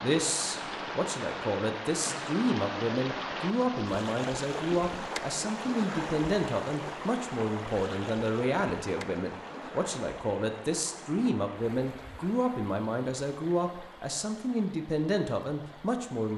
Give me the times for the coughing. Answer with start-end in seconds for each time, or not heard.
not heard.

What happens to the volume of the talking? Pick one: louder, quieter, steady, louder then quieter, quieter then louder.
steady.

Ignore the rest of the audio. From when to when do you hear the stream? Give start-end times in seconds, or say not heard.
0.0-16.3.